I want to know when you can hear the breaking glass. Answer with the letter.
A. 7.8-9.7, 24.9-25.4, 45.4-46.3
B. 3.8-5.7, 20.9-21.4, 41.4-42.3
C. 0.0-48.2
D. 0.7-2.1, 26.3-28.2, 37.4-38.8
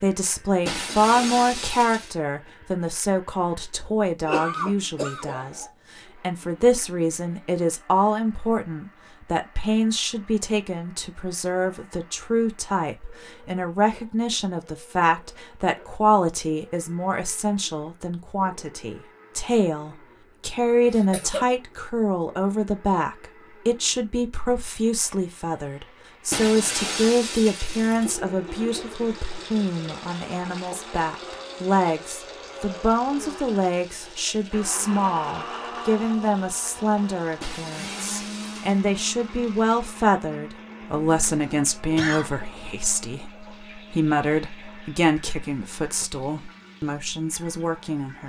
D.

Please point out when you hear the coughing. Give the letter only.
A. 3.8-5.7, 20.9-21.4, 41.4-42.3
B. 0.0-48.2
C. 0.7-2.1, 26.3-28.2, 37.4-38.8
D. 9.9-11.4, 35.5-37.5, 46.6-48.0
A.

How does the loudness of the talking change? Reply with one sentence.
The loudness of the talking stays about the same.